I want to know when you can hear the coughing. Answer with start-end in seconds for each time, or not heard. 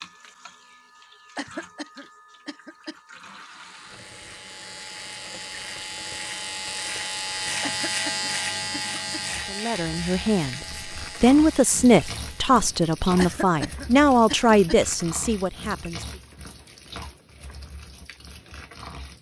1.4-3.0, 7.6-9.2, 13.2-14.8.